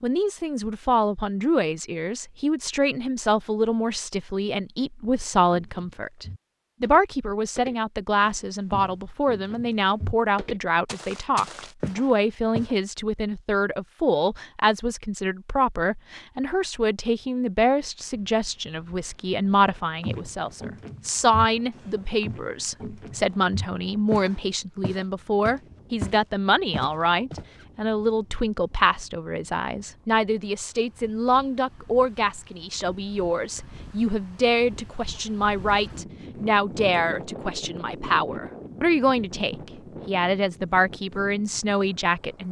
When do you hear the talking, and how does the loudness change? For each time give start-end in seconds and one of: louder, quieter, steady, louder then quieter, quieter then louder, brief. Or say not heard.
0.0-42.4 steady.